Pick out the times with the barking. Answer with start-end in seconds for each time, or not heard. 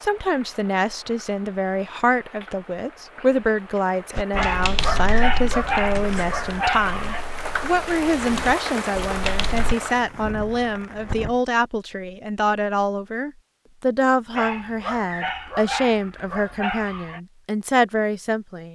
4.3-7.2, 14.3-17.2.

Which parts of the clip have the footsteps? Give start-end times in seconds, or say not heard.
not heard.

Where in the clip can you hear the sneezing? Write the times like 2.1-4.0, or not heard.
not heard.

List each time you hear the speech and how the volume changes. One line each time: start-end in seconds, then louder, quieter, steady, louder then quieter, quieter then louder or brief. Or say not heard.
0.0-18.7 steady.